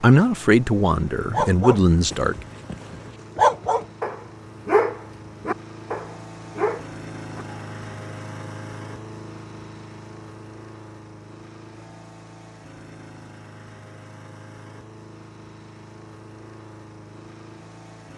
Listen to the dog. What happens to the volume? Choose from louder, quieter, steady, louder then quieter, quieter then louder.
louder then quieter.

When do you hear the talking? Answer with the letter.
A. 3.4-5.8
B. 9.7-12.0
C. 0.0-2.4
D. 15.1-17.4
C.